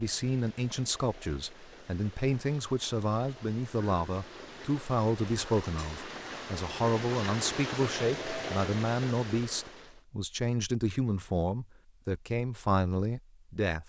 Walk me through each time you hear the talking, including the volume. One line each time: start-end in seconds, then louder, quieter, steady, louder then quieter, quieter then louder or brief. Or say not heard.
0.0-13.8 steady.